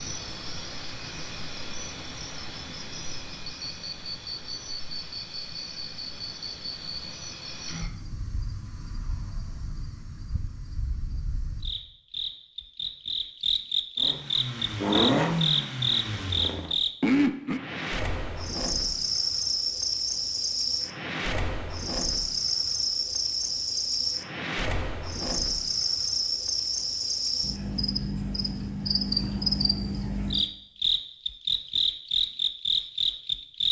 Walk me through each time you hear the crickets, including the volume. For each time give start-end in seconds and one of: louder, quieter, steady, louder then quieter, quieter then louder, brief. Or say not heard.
0.0-33.6 louder.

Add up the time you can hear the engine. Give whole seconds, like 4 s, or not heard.
3 s.